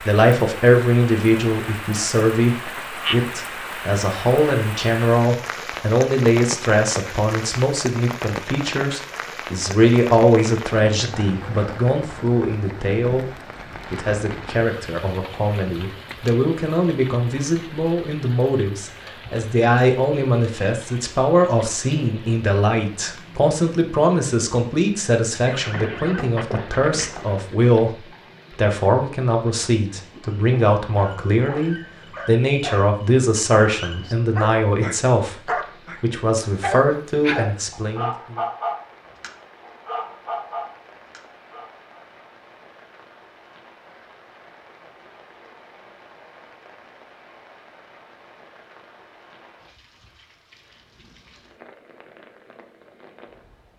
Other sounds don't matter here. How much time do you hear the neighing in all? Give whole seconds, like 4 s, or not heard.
2 s.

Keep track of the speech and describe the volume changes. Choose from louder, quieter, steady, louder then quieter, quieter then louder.
steady.